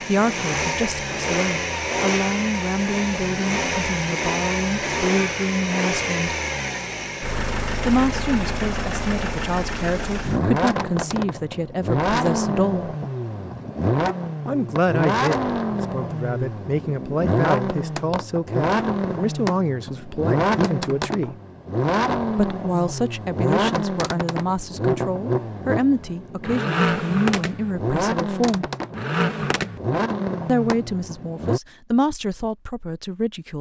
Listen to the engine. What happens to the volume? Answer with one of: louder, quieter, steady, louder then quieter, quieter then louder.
steady.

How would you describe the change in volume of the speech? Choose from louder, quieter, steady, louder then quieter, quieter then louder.
steady.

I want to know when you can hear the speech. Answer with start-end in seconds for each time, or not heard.
0.1-6.3, 7.8-12.9, 14.4-21.4, 22.3-28.6, 30.4-33.5.